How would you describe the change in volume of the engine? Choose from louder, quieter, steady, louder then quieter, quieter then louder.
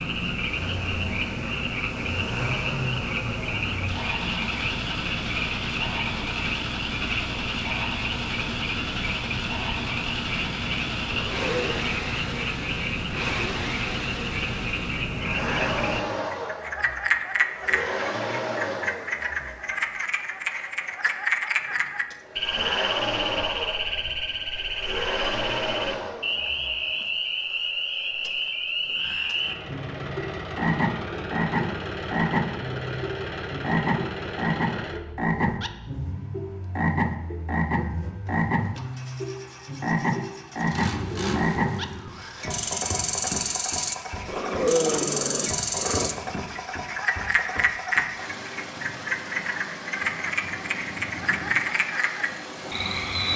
steady.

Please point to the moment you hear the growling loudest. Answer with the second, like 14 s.
45 s.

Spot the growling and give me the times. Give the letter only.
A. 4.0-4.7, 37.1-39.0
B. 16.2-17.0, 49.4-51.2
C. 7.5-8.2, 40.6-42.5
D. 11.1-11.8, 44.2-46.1
D.